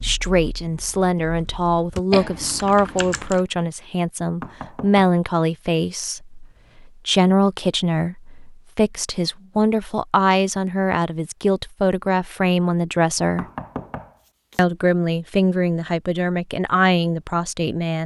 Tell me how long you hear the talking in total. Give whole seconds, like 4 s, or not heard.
17 s.